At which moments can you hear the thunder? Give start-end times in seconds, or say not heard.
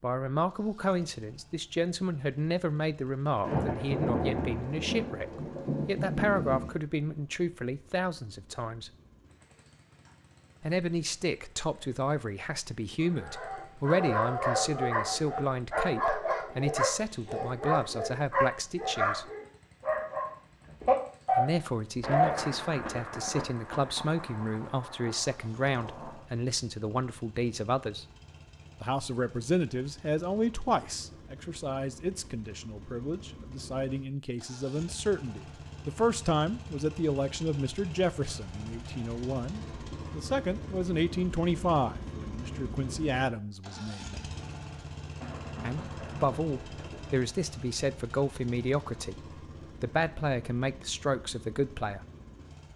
3.4-6.8, 22.0-26.2, 45.2-47.2.